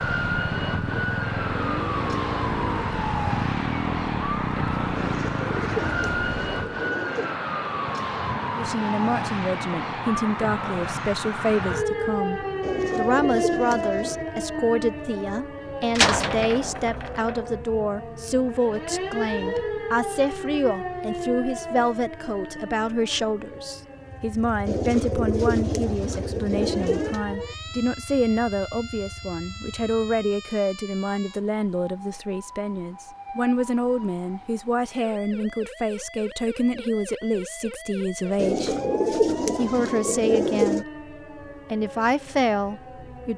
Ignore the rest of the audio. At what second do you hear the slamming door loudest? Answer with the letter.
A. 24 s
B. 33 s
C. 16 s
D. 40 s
C.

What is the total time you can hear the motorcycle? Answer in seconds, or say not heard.
13 s.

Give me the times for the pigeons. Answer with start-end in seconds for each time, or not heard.
5.0-7.3, 12.6-14.2, 24.6-27.2, 38.4-40.9.